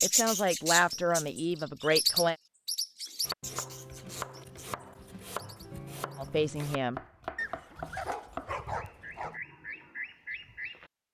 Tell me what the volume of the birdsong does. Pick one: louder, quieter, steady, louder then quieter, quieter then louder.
quieter then louder.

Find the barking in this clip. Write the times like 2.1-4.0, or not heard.
7.3-9.4.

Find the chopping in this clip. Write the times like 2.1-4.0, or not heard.
3.2-8.6.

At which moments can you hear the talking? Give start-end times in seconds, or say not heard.
0.0-2.4, 6.2-7.0.